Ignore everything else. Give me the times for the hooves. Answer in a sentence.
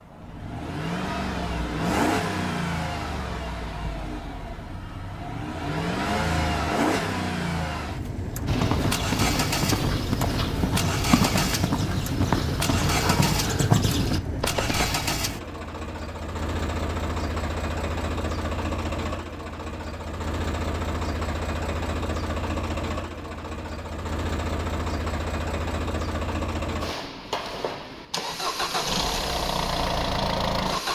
You can hear the hooves from 8.4 to 14.9 s.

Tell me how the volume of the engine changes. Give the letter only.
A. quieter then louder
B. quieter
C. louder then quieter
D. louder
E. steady
E.